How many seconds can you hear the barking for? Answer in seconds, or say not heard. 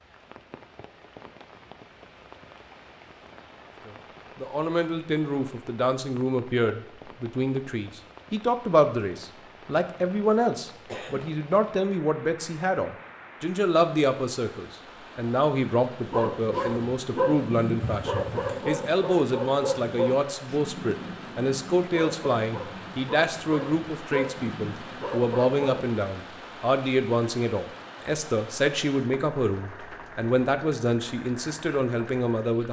10 s.